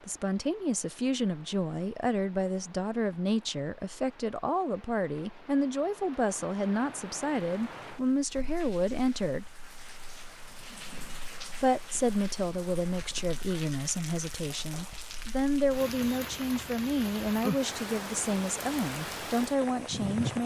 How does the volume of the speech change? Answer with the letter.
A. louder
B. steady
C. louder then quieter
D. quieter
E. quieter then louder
B.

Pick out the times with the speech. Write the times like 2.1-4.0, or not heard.
0.1-9.5, 11.6-20.4.